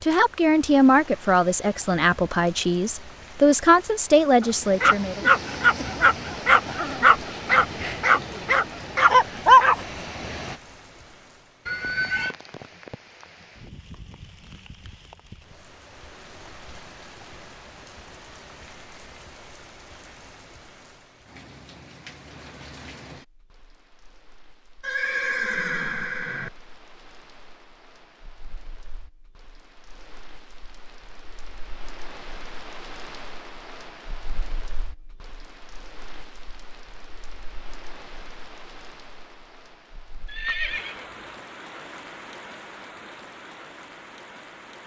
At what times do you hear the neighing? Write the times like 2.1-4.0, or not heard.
11.7-12.3, 24.8-26.5, 40.2-41.4.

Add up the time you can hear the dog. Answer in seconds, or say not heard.
6 s.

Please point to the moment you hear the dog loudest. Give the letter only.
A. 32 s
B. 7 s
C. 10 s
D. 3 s
C.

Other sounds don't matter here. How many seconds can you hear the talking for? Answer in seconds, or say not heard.
5 s.